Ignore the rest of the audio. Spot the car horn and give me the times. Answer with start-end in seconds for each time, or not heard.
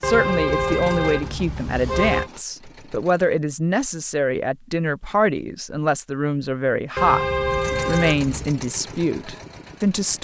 0.0-2.3, 7.0-8.6.